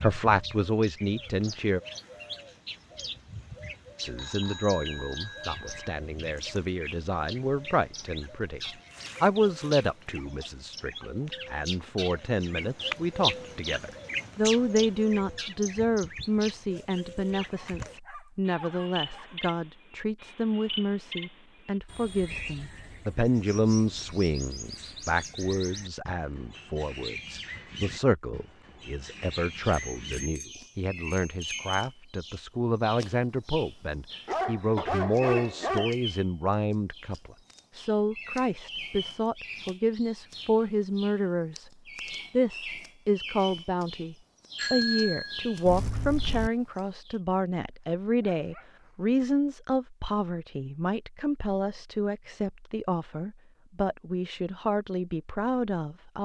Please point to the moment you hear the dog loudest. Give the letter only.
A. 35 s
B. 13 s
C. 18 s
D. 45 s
A.